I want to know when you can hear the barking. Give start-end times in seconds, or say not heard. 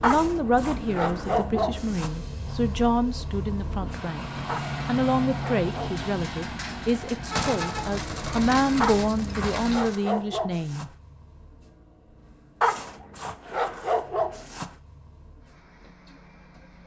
0.0-2.1, 4.5-6.0, 8.8-10.8, 12.6-14.7.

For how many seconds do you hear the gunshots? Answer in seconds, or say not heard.
4 s.